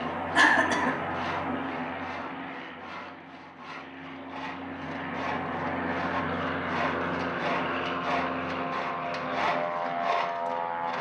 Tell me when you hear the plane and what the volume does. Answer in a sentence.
The plane can be heard from 0.0 to 10.9 s, getting quieter then louder.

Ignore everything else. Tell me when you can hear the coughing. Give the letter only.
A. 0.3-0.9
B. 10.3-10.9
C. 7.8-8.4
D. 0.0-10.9
A.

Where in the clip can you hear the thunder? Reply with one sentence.
You can't hear the thunder here.